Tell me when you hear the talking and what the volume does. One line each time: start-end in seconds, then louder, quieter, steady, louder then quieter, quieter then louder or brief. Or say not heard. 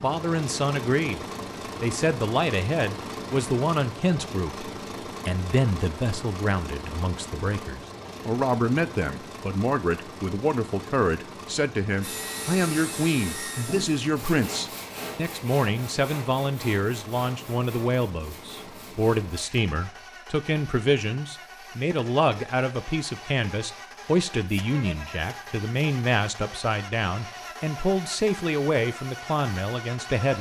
0.0-30.3 steady.